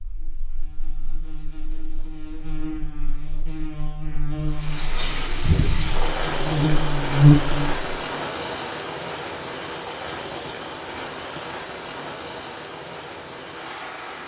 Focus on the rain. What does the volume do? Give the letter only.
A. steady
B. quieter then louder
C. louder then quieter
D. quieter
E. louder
D.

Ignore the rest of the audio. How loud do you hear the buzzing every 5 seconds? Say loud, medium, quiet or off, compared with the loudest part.
quiet, loud, off.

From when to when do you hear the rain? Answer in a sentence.
The rain can be heard from 4.5 to 14.2 s.